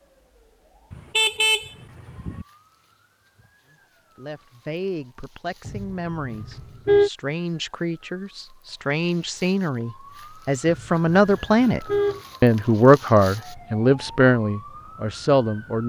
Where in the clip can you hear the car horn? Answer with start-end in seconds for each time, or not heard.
0.9-2.5, 5.7-7.1, 10.7-12.2.